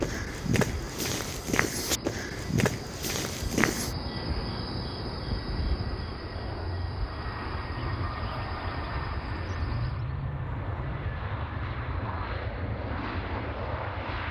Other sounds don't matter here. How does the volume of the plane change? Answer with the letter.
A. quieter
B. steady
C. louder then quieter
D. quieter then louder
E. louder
E.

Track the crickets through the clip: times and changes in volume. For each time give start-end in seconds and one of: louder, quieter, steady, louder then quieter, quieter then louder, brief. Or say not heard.
0.1-10.0 louder then quieter.